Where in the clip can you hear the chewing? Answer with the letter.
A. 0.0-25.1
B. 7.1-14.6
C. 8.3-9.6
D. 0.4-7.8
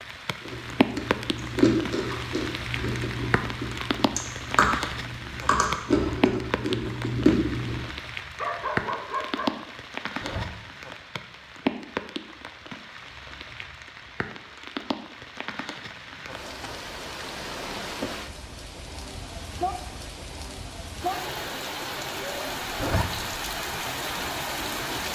D.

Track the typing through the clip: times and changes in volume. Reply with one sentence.
The typing can't be heard in this clip.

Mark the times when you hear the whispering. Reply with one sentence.
The whispering can't be heard in this clip.